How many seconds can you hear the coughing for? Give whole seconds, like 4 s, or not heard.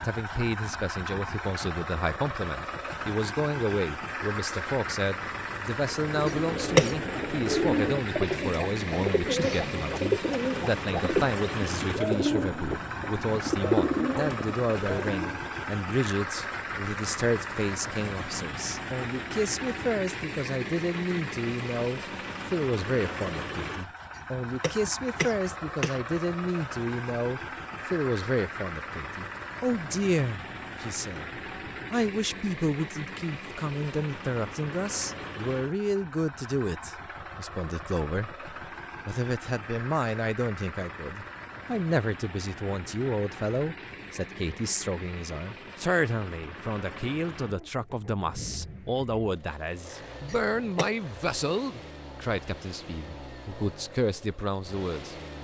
3 s.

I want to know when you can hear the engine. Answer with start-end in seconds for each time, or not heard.
0.0-55.3.